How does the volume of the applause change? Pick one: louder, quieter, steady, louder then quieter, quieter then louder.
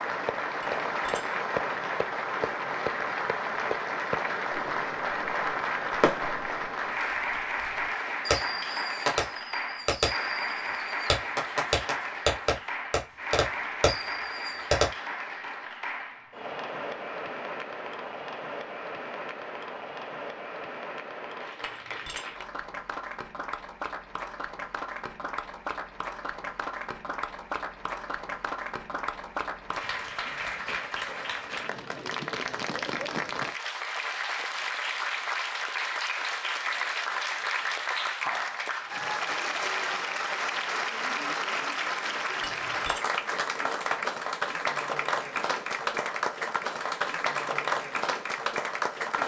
quieter then louder.